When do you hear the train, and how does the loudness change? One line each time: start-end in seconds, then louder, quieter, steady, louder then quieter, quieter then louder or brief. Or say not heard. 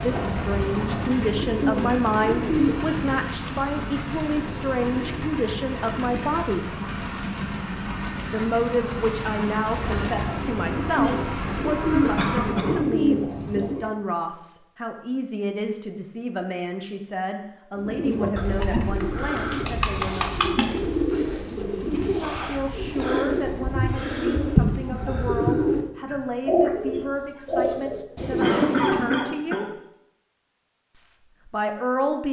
0.0-12.6 steady.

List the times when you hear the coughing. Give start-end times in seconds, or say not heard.
12.2-12.9, 28.4-29.7.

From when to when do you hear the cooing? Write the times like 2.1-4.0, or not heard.
0.0-3.3, 9.6-13.9, 17.8-29.2.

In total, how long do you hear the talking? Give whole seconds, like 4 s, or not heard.
28 s.